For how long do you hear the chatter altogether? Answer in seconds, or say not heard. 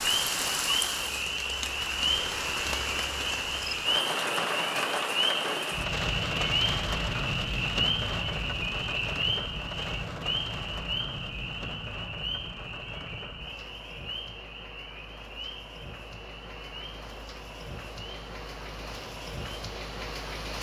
not heard.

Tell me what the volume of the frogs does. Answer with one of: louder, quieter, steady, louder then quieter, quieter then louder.
quieter.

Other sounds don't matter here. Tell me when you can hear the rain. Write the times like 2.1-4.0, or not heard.
0.0-20.5.